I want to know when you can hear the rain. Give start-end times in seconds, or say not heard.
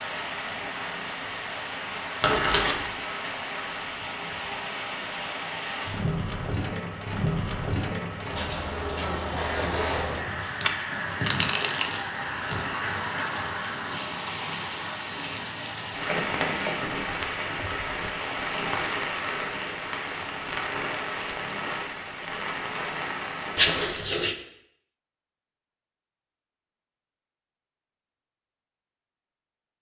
0.0-23.9.